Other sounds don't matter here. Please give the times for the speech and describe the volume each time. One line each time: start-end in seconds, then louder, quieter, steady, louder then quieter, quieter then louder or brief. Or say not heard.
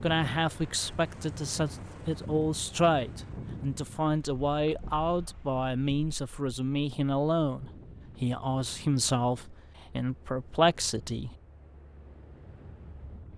0.0-11.3 steady.